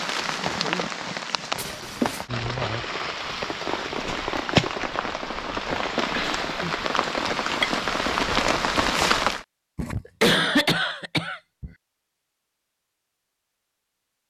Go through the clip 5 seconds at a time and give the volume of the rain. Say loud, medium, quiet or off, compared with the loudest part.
loud, loud, off.